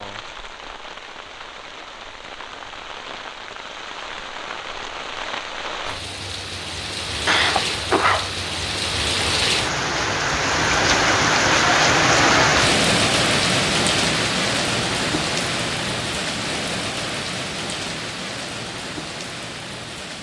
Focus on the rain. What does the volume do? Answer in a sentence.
The loudness of the rain goes up, then down.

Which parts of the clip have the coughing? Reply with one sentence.
You can hear the coughing from 7.2 to 8.3 s.